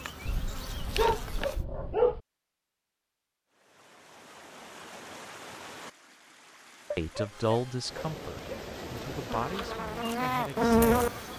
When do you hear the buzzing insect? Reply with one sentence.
You can hear the buzzing insect from 0.0 to 1.6 s and from 8.3 to 11.3 s.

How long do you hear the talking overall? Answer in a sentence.
The talking can be heard for 4 seconds in total.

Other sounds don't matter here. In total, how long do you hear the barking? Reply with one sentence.
You can hear the barking for 4 seconds altogether.